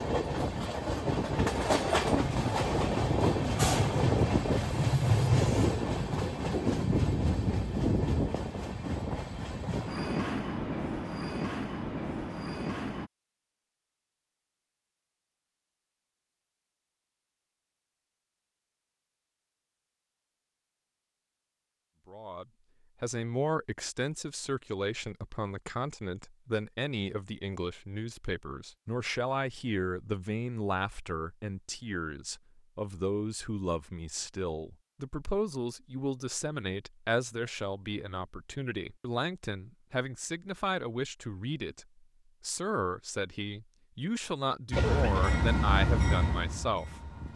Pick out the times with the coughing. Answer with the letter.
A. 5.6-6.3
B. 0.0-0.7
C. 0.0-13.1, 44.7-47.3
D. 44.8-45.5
D.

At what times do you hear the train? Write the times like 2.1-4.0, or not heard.
0.0-13.1, 44.7-47.3.